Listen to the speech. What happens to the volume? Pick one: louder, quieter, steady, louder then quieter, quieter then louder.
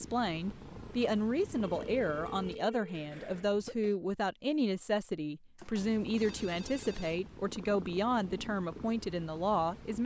steady.